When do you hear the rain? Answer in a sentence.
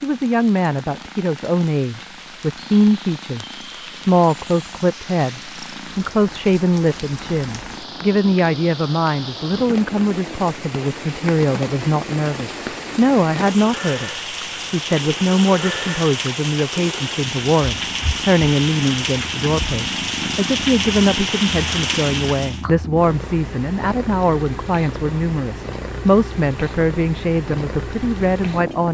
The rain can be heard from 0.0 to 22.6 s.